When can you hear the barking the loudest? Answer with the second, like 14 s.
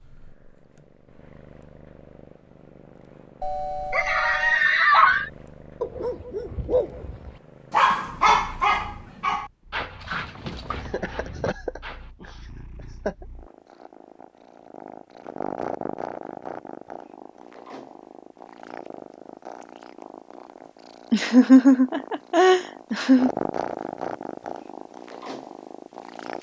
8 s.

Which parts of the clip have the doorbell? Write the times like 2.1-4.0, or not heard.
3.4-4.6.